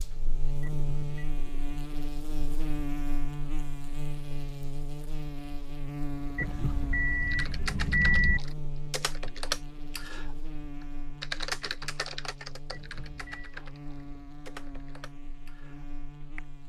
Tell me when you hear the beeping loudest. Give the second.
8 s.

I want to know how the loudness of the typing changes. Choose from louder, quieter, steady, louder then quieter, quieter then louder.
louder then quieter.